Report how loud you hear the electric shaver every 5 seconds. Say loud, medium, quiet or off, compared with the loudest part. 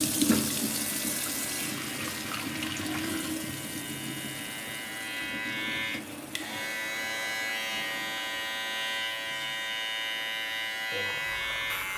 medium, loud, loud.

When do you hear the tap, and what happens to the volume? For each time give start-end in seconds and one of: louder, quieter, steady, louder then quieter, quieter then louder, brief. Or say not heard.
0.0-11.9 quieter.